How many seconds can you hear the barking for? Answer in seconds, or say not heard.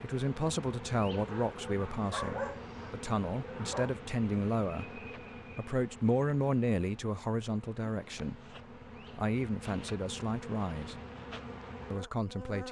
3 s.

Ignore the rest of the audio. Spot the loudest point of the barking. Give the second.
2 s.